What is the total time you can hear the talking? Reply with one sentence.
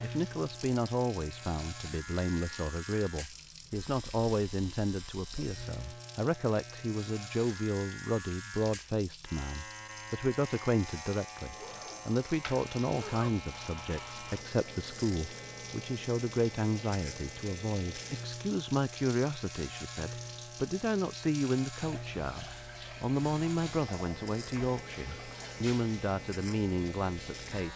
You can hear the talking for 28 seconds altogether.